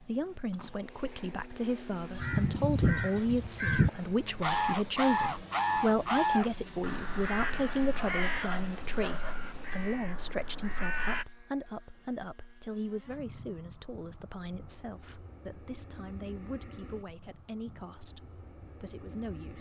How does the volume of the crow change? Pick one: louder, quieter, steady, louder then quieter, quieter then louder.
quieter.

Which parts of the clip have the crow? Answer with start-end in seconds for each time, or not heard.
2.1-11.2.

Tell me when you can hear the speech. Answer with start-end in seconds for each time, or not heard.
0.0-19.5.